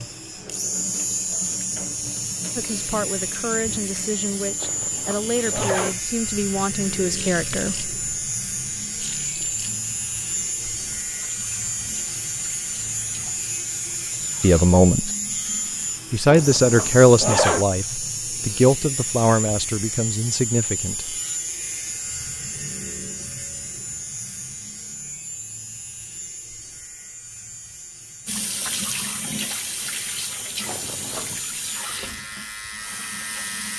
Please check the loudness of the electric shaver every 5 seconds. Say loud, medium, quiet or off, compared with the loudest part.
loud, loud, loud, loud, loud, medium, medium.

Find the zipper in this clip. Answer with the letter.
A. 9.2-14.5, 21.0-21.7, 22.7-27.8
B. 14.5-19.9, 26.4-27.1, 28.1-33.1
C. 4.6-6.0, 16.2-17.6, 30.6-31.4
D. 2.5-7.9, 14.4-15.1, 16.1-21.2
C.